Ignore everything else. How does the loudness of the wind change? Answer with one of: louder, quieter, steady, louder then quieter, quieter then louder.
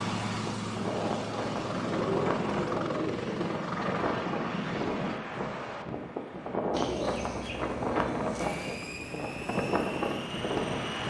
steady.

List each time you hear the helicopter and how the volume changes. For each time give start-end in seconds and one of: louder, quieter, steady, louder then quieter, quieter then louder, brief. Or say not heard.
0.0-5.2 steady
8.3-11.0 brief.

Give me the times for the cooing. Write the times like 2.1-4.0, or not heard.
1.6-3.5, 6.7-8.8.